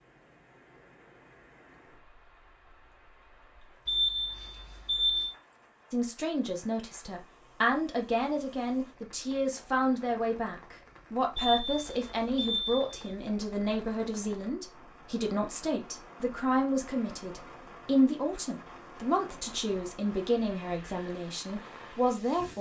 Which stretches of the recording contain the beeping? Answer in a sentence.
The beeping can be heard from 3.9 to 5.3 s and from 11.3 to 13.0 s.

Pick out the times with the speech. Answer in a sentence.
You can hear the speech from 5.9 to 22.5 s.